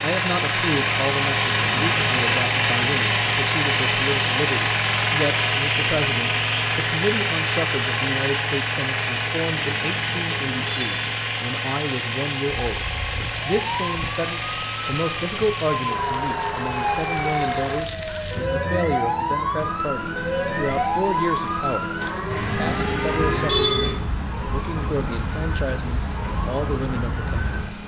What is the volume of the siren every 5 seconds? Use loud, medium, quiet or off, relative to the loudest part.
off, off, medium, loud, loud, medium.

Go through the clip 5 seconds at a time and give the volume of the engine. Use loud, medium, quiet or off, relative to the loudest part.
loud, loud, medium, medium, quiet, quiet.